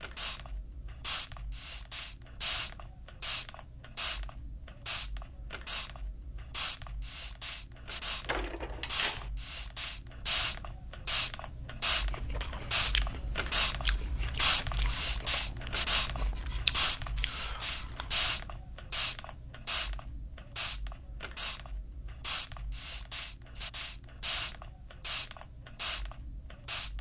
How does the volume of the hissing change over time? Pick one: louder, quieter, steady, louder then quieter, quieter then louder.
louder then quieter.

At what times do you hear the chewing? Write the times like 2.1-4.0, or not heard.
12.1-18.3.